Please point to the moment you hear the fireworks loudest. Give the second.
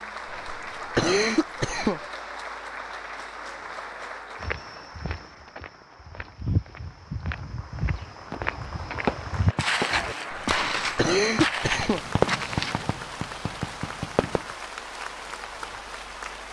12 s.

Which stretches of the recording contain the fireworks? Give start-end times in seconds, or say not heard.
8.3-14.4.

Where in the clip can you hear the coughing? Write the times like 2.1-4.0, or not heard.
0.2-2.0, 10.3-12.0.